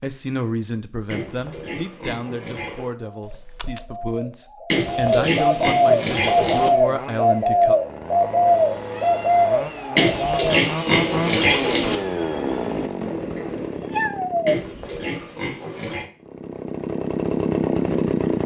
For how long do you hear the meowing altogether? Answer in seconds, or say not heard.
4 s.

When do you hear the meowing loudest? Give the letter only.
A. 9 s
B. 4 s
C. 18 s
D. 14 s
D.